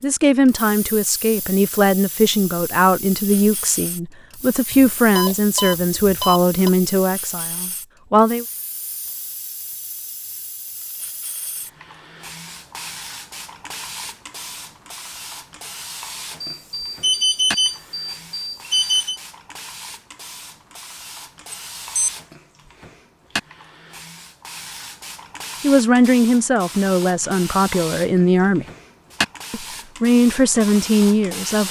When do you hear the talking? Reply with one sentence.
You can hear the talking from 0.0 to 8.4 s, from 25.6 to 28.6 s and from 29.5 to 31.6 s.